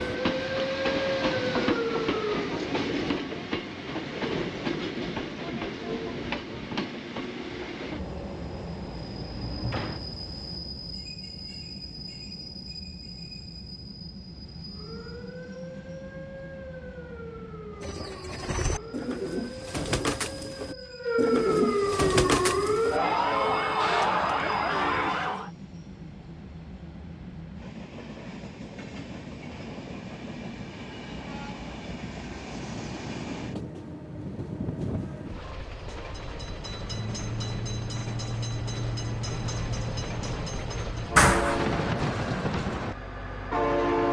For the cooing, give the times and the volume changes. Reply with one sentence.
The cooing can be heard from 17.8 to 23.0 s, getting louder.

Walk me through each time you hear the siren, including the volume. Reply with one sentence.
The siren can be heard briefly from 0.0 to 2.6 s; and from 14.7 to 25.5 s, getting louder.